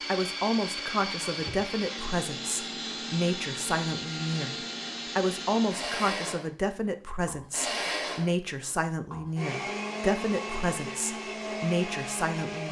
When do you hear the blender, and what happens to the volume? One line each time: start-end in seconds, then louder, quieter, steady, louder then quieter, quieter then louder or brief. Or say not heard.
0.0-12.6 steady.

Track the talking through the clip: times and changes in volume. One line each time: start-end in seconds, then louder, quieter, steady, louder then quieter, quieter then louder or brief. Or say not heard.
0.1-12.6 steady.